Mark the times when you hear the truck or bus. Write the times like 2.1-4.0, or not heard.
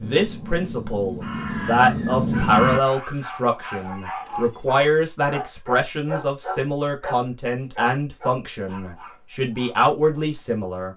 not heard.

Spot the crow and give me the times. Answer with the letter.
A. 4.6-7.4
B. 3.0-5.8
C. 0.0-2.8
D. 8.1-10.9
C.